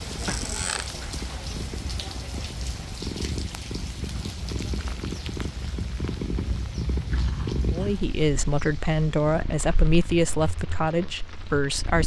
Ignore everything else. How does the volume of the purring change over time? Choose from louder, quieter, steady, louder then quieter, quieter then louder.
louder then quieter.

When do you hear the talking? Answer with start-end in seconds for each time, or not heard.
7.7-12.0.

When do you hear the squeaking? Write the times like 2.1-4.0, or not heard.
0.1-0.9.